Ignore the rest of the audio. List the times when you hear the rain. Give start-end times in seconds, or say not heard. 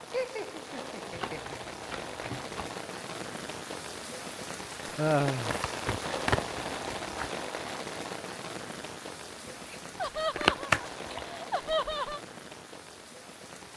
0.0-13.7.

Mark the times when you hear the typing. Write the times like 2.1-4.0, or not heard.
not heard.